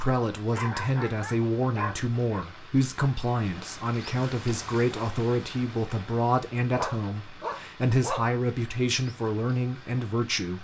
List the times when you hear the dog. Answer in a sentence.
The dog can be heard from 0.5 to 2.5 s and from 6.8 to 8.3 s.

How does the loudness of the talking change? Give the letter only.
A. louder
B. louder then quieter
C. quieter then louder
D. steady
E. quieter
D.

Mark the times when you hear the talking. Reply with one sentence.
You can hear the talking from 0.0 to 10.5 s.